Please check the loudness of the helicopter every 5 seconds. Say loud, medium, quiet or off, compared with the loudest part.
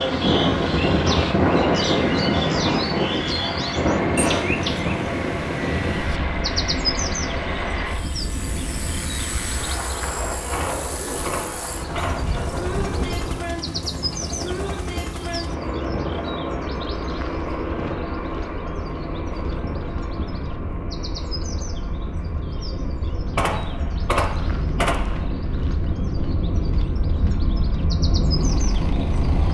loud, loud, loud, loud, medium, medium.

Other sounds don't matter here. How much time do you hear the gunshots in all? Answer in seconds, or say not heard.
4 s.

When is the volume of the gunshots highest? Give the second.
24 s.